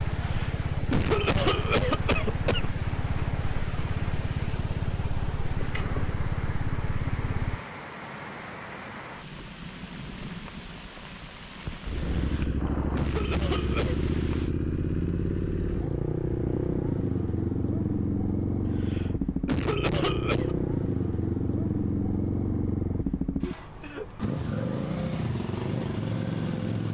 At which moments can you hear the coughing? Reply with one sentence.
The coughing can be heard from 0.2 to 2.7 s, from 12.3 to 14.0 s and from 18.6 to 20.6 s.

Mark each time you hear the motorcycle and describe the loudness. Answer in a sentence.
You can hear the motorcycle from 0.0 to 7.6 s, at a steady volume; and from 11.8 to 26.8 s, at a steady volume.